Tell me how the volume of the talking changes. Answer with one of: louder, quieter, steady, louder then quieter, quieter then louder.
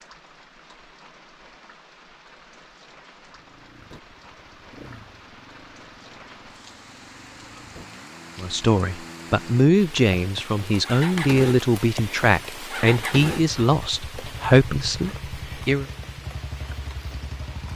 steady.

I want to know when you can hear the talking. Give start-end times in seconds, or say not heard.
8.3-15.8.